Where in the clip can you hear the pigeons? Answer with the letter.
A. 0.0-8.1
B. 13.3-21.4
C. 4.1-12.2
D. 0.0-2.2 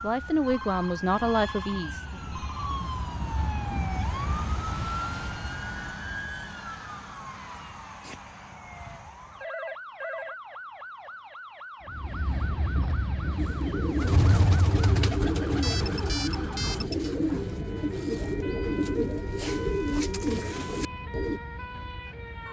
B.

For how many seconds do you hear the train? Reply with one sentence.
You can hear the train for 17 seconds altogether.